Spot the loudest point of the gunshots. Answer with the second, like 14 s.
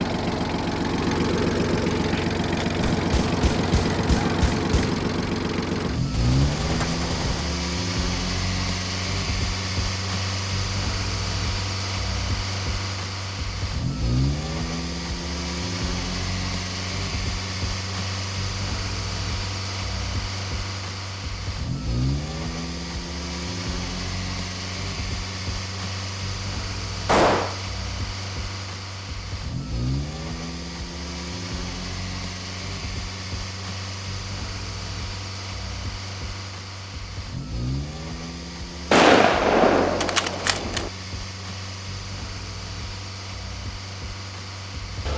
39 s.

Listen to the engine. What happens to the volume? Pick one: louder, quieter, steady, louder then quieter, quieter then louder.
quieter.